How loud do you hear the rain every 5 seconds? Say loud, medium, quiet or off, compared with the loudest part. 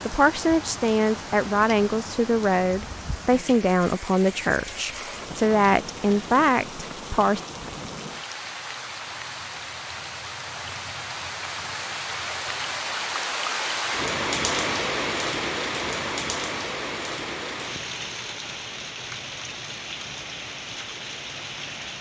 medium, medium, loud, loud, medium.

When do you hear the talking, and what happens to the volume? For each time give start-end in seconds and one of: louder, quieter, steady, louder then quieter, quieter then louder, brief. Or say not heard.
0.1-7.4 steady.